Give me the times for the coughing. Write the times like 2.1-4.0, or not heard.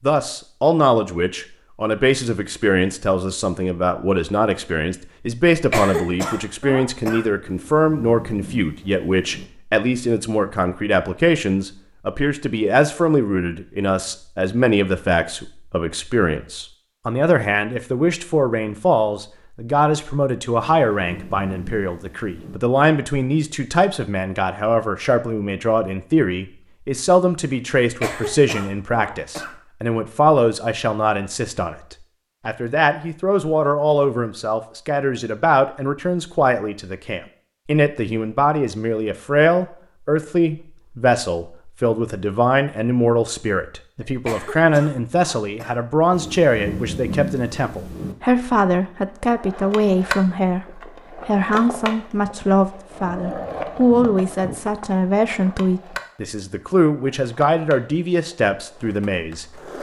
5.5-7.2, 27.8-29.5, 44.0-45.8.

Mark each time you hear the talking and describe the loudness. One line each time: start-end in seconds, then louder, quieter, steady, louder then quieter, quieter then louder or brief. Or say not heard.
0.0-59.7 steady.